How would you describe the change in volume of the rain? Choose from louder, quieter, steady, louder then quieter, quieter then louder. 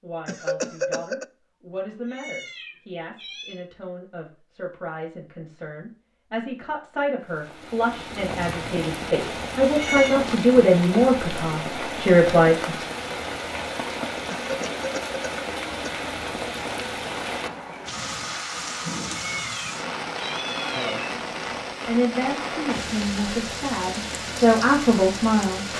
steady.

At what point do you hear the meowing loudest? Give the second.
10 s.